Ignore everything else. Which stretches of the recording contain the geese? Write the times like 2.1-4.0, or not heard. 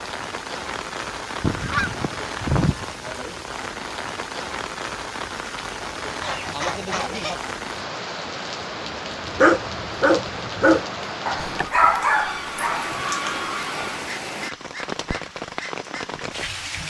1.4-2.9, 6.2-7.4, 11.4-14.1.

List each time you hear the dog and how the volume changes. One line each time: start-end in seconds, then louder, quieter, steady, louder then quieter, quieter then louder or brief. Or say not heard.
9.2-16.1 quieter.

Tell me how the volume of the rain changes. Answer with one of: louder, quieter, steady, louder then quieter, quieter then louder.
steady.